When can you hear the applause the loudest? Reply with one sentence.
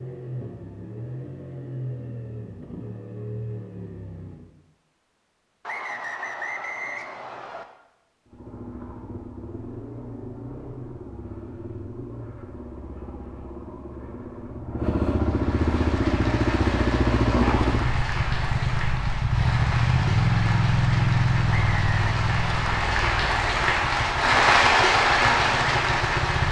The loudest moment of the applause is at 25 seconds.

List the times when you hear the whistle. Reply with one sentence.
The whistle can be heard from 5.7 to 7.7 s and from 21.5 to 22.1 s.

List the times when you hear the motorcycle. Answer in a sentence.
The motorcycle can be heard from 0.0 to 4.5 s and from 8.2 to 26.4 s.